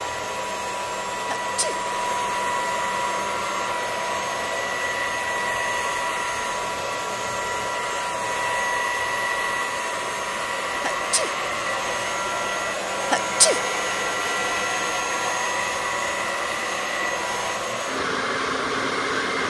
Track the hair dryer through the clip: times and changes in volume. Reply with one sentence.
The hair dryer can be heard from 0.0 to 19.4 s, at a steady volume.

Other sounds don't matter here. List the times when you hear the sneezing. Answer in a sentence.
The sneezing can be heard from 1.2 to 1.8 s, from 10.8 to 11.3 s and from 13.1 to 13.6 s.